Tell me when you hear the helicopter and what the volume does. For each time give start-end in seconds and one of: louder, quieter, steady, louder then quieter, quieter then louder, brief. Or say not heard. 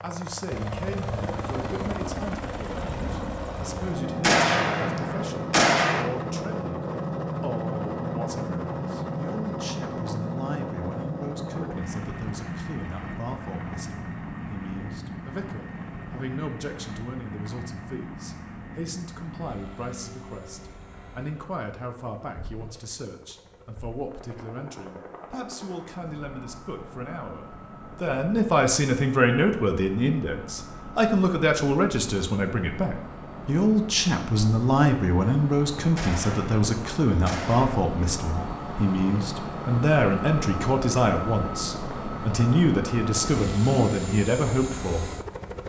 0.0-45.6 quieter then louder.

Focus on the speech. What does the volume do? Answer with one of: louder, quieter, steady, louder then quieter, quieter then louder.
louder.